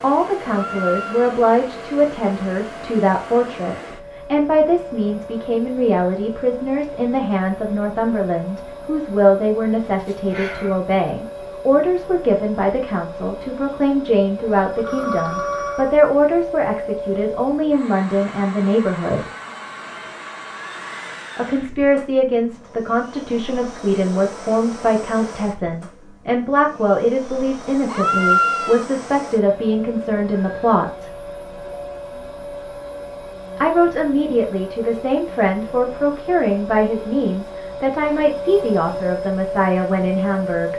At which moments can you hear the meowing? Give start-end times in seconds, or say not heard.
0.5-1.4, 27.9-28.9.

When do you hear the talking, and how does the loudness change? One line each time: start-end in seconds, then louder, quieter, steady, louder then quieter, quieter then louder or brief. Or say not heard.
0.0-19.3 steady
21.4-31.1 steady
33.5-40.7 steady.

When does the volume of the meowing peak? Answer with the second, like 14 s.
28 s.